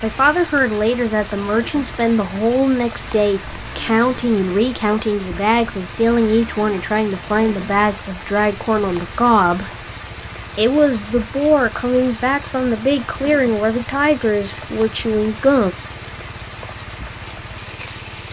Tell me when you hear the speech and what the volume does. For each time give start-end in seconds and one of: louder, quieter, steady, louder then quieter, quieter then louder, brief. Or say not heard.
0.0-9.7 steady
10.6-15.7 steady.